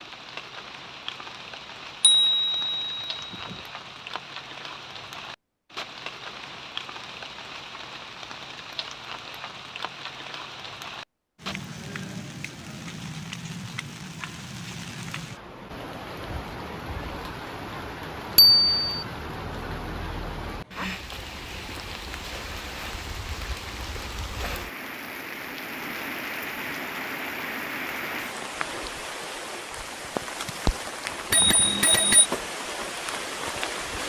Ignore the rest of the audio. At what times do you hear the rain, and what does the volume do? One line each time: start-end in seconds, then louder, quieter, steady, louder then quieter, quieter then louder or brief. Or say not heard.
0.0-34.0 louder.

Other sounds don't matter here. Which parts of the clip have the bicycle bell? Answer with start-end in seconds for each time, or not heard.
2.0-3.5, 18.4-19.1, 31.3-32.2.